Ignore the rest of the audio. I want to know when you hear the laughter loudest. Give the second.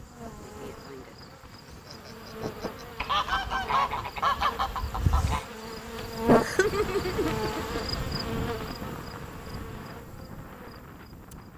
7 s.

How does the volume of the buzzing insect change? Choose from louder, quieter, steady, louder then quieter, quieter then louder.
louder then quieter.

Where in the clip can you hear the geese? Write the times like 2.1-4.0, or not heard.
3.0-5.5.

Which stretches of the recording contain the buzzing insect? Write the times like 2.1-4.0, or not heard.
0.0-11.5.